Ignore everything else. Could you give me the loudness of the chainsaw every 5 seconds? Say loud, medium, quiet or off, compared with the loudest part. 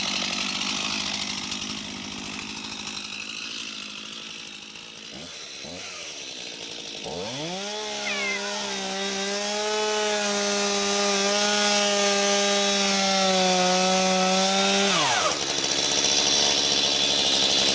medium, medium, loud, loud.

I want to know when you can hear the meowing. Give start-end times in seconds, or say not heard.
8.0-8.8.